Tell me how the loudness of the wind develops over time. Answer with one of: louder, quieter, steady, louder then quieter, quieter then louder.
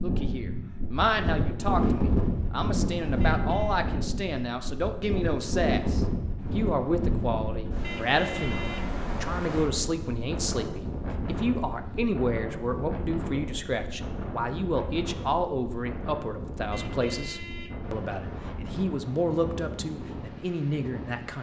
quieter.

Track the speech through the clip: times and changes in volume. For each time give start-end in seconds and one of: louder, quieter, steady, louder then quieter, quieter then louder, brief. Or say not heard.
0.0-21.3 steady.